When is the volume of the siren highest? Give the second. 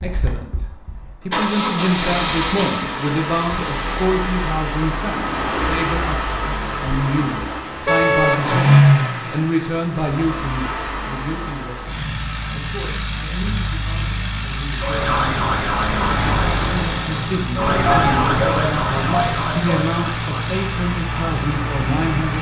18 s.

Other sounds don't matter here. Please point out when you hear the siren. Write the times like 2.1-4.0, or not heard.
14.8-22.3.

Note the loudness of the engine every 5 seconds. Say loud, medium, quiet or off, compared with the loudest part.
medium, loud, medium, medium, medium.